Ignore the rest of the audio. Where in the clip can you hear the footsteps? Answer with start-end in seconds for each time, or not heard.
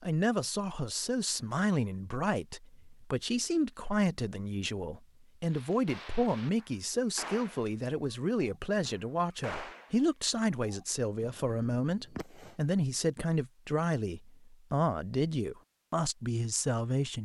not heard.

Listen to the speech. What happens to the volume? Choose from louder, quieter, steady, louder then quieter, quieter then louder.
steady.